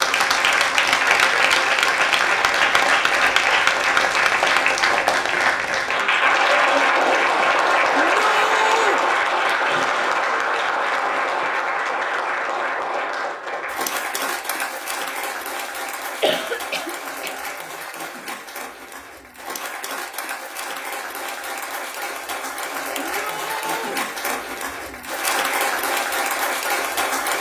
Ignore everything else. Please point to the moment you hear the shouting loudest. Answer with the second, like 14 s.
9 s.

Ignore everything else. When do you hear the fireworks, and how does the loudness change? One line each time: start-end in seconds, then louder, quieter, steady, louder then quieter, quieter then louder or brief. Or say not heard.
not heard.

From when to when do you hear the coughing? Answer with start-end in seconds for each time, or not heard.
16.2-17.4.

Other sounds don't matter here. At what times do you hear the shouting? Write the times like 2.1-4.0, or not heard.
8.0-9.0, 22.9-24.0.